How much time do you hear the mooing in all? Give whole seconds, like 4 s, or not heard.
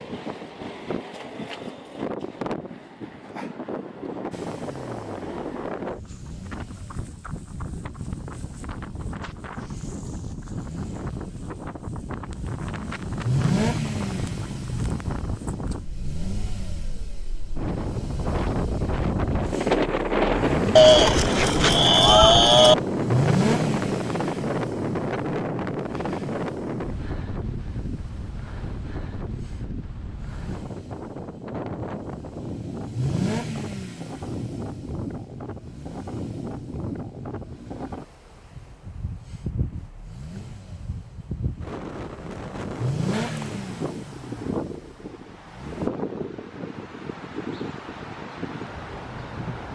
2 s.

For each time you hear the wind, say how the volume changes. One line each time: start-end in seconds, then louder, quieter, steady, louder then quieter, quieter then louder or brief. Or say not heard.
0.0-49.7 louder then quieter.